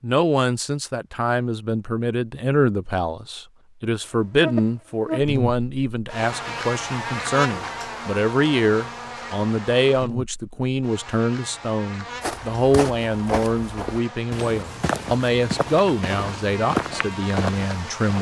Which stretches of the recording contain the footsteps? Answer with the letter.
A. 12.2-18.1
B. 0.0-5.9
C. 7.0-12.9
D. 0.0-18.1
A.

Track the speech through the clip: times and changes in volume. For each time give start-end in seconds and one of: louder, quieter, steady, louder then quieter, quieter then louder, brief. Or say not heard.
0.0-18.1 steady.